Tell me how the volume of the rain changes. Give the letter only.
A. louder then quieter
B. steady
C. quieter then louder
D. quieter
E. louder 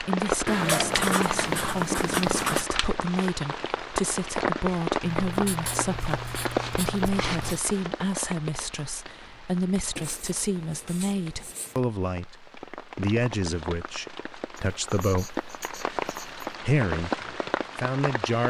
C.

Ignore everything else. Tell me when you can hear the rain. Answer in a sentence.
You can hear the rain from 0.0 to 18.4 s.